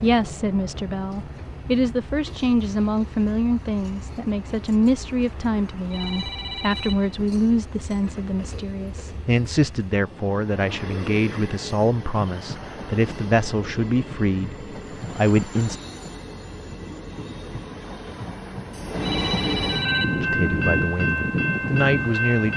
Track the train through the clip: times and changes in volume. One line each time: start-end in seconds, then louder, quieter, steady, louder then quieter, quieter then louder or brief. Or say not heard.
0.0-22.5 louder.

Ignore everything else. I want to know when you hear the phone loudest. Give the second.
20 s.